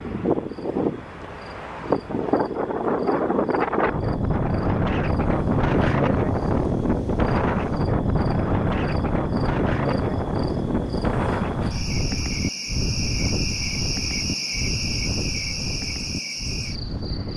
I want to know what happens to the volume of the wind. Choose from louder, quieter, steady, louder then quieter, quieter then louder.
quieter.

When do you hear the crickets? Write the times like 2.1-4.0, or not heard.
0.2-17.3.